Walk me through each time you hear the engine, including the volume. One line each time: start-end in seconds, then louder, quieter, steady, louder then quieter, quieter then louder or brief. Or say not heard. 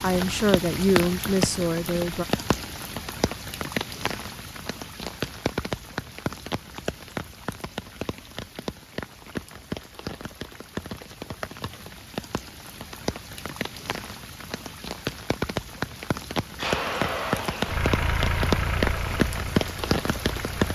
16.6-20.6 quieter.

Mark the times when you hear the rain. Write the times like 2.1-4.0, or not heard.
0.0-20.6.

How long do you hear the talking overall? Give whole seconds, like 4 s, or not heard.
2 s.